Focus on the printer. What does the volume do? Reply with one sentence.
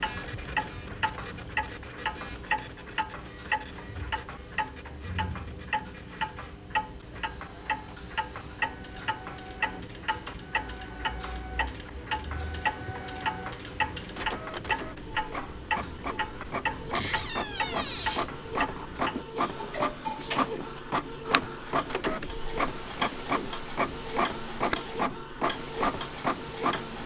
The volume of the printer goes up.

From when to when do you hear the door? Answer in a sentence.
You can hear the door from 16.9 to 18.3 s.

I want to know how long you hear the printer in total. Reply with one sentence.
The printer can be heard for 27 seconds in total.